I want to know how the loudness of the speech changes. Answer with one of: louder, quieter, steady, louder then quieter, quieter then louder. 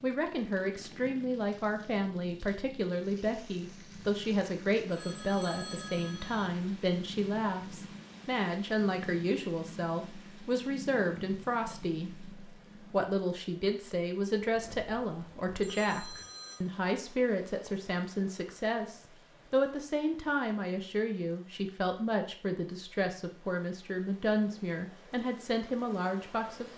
steady.